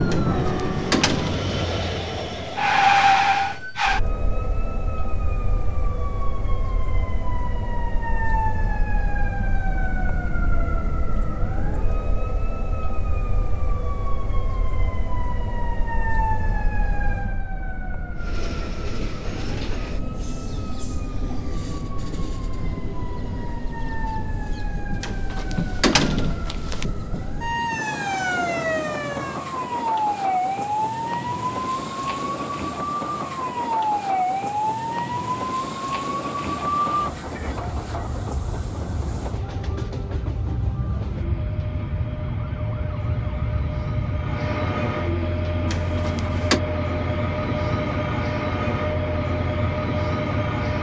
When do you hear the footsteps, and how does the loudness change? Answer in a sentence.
You can't hear the footsteps here.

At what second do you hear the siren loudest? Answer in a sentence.
The volume of the siren peaks at 3 seconds.